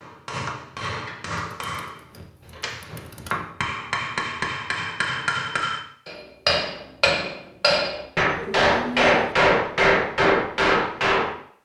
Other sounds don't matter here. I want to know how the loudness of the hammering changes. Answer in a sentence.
The loudness of the hammering goes up.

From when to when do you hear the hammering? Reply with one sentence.
The hammering can be heard from 0.0 to 11.3 s.